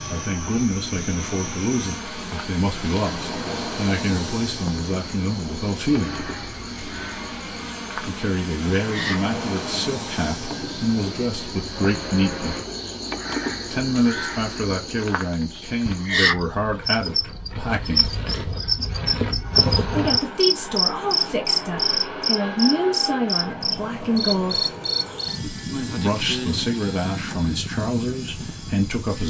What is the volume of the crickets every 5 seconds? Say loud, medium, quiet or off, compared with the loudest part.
quiet, quiet, medium, loud, loud, medium.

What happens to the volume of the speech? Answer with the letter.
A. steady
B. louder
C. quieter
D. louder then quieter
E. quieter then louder
A.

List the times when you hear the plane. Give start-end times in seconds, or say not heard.
0.0-12.7, 19.4-29.2.